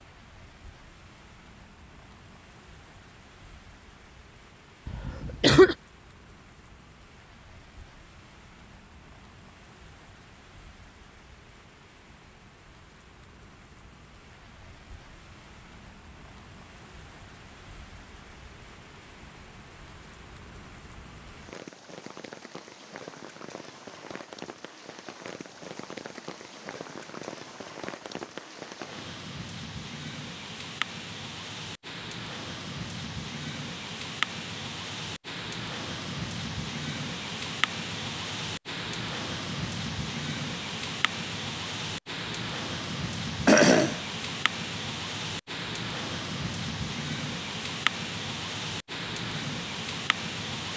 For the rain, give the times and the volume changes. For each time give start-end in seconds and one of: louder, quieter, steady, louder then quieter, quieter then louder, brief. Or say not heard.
0.0-50.7 louder.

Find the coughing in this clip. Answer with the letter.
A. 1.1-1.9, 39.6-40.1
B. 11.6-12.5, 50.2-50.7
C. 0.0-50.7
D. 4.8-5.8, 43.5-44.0
D.